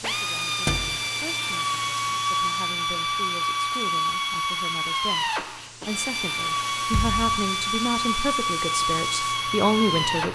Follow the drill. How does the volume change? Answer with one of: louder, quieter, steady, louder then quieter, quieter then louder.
steady.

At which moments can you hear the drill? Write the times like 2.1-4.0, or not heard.
0.0-10.2.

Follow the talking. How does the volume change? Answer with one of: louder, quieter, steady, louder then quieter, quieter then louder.
louder.